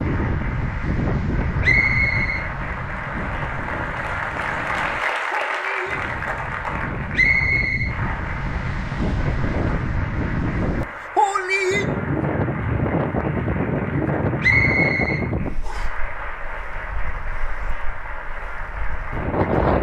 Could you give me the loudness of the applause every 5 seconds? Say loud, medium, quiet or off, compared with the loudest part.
loud, loud, medium, medium.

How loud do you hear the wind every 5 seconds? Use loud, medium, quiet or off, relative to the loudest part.
medium, medium, loud, medium.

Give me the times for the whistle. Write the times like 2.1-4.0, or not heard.
1.6-2.5, 7.1-8.0, 14.4-15.8.